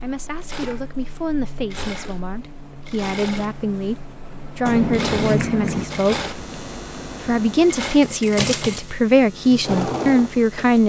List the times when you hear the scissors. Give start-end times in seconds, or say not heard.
4.7-5.9.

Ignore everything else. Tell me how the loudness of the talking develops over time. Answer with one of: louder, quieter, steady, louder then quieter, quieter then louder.
louder.